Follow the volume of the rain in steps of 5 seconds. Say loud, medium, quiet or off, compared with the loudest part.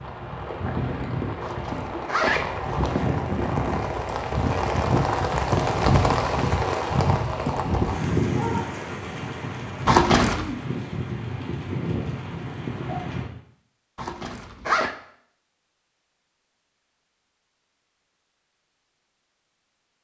loud, loud, medium, off.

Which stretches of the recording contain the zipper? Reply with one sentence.
The zipper can be heard from 1.4 to 3.1 s, from 9.8 to 10.4 s and from 13.9 to 14.9 s.